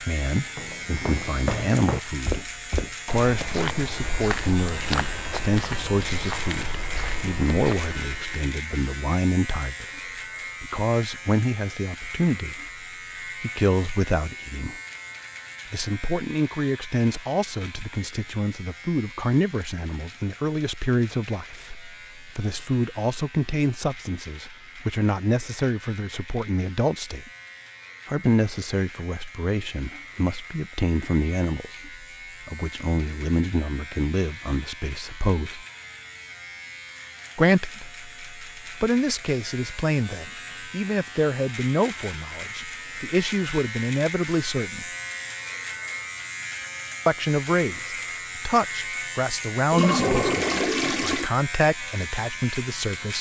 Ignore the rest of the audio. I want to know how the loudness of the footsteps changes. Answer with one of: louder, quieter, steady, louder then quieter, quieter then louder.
quieter.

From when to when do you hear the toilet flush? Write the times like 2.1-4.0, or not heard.
49.7-51.3.